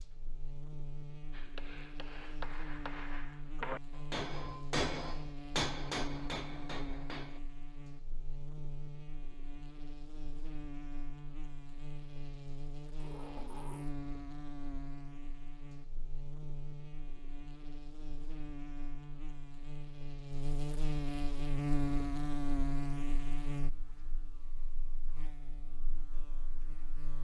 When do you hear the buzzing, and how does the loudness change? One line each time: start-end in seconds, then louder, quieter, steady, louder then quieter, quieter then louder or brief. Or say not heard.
0.0-27.1 louder.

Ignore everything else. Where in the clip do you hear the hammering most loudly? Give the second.
5 s.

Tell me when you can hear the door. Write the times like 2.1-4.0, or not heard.
12.9-13.9.